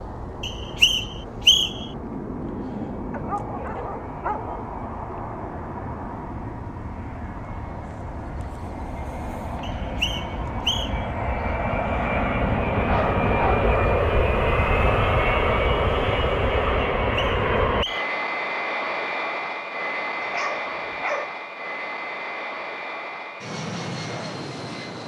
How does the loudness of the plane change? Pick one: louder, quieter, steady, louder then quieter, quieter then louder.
louder then quieter.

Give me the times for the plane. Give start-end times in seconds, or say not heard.
0.0-25.0.